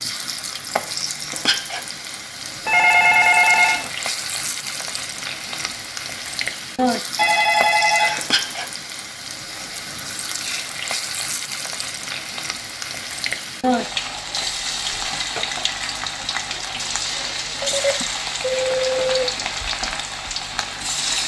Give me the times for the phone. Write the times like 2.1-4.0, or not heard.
2.6-3.9, 7.2-8.6, 17.6-19.2.